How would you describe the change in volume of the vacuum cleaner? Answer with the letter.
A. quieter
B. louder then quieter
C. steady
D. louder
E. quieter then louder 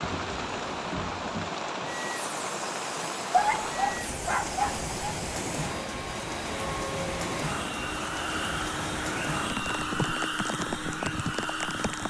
D.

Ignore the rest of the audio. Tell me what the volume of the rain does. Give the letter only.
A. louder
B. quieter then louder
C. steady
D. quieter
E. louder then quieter
C.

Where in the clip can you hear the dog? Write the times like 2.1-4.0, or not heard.
3.3-5.2.